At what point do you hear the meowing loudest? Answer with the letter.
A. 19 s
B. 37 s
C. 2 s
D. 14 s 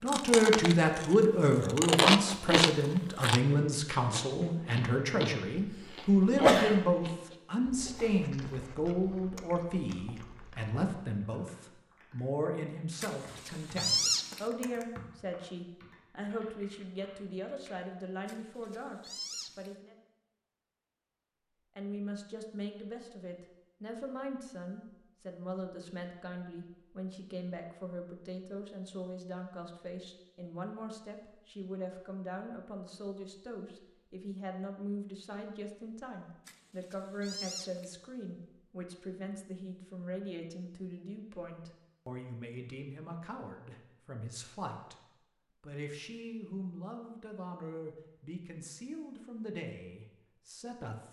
D.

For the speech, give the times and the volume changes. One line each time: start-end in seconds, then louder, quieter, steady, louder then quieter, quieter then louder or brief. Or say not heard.
0.0-19.9 quieter
21.8-51.0 steady.